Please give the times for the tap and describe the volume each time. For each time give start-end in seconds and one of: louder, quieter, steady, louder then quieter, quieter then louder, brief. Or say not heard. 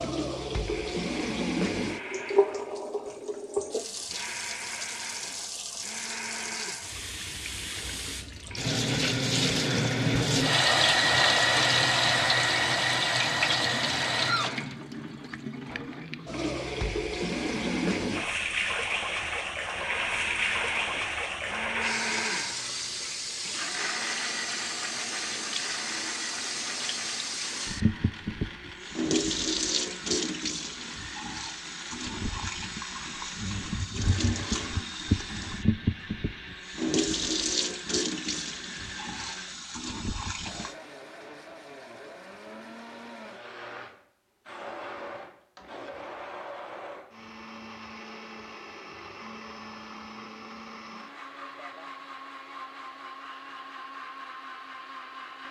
0.0-40.8 louder then quieter.